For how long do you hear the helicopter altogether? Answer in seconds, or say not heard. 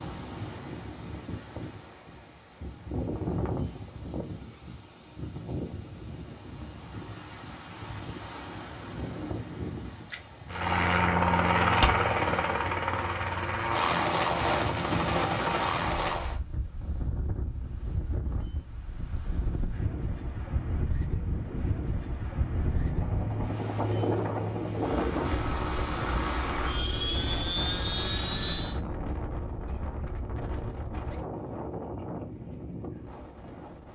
12 s.